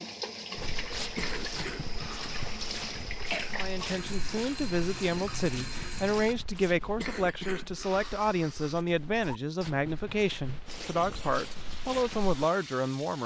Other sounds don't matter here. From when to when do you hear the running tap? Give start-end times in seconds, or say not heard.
0.0-6.3, 10.7-13.2.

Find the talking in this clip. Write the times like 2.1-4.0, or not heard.
3.5-13.2.